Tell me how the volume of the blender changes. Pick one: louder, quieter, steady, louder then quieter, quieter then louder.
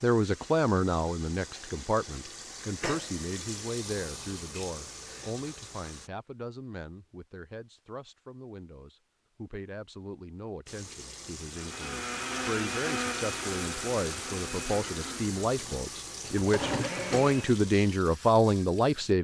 quieter then louder.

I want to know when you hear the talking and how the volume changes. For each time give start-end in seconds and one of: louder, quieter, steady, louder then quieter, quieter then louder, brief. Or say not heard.
0.0-19.1 quieter then louder.